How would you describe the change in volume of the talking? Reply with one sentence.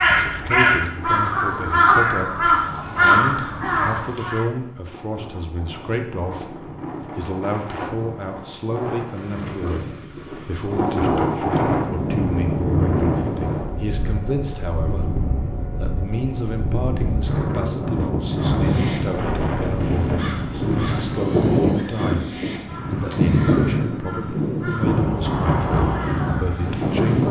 The loudness of the talking stays about the same.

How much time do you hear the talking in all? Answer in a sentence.
You can hear the talking for 27 seconds altogether.